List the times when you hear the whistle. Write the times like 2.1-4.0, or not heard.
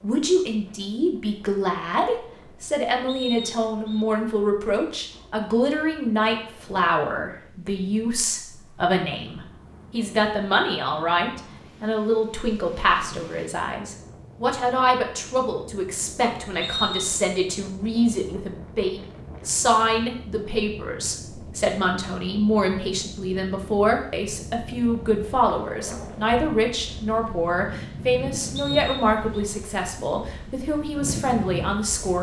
3.0-4.0, 16.6-17.2, 28.6-29.1.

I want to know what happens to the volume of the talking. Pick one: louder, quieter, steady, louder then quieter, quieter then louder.
steady.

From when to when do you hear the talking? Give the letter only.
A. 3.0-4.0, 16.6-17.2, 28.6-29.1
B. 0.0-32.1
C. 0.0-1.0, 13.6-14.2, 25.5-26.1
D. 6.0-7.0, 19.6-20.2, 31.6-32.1
B.